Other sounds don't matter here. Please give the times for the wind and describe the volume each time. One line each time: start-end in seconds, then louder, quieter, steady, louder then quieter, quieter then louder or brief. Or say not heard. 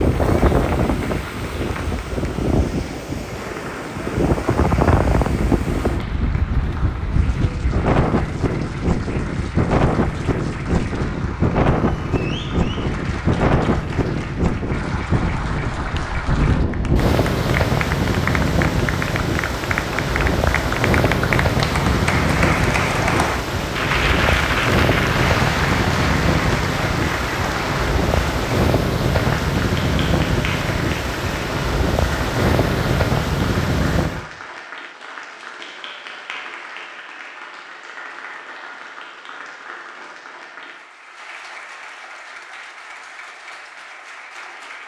0.0-34.2 steady.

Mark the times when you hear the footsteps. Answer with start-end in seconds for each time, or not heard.
not heard.